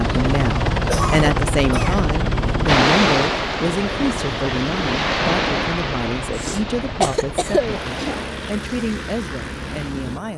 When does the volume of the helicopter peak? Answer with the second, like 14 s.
1 s.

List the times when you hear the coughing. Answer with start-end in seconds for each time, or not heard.
0.8-2.0, 6.3-8.2.